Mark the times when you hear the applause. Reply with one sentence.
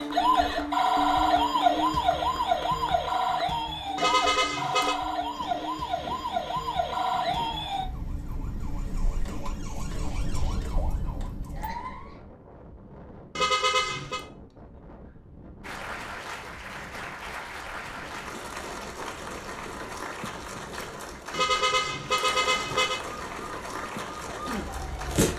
The applause can be heard from 0.1 to 3.5 s and from 15.6 to 25.3 s.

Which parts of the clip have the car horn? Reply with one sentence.
The car horn can be heard from 4.0 to 5.0 s, from 13.3 to 14.2 s and from 21.3 to 23.0 s.